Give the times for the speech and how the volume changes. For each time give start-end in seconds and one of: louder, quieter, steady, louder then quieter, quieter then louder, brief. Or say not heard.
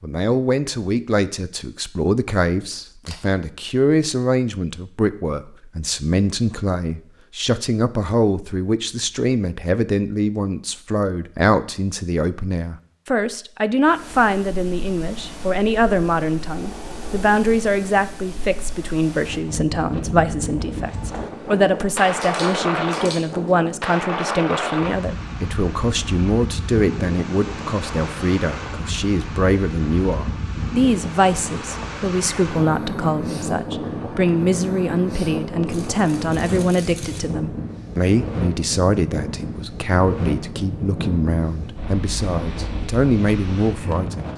0.0-44.3 steady.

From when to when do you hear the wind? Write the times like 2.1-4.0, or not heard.
13.8-44.3.